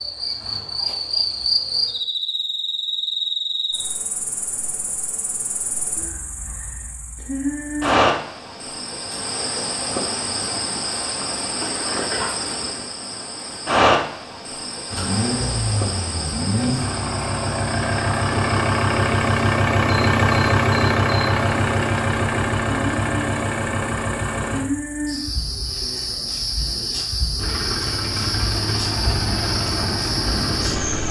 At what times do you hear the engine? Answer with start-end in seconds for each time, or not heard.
14.9-24.6, 27.4-31.0.